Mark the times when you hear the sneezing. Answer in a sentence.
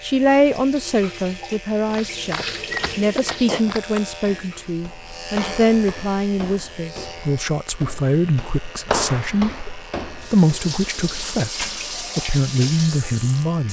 The sneezing can be heard from 3.1 to 3.6 s.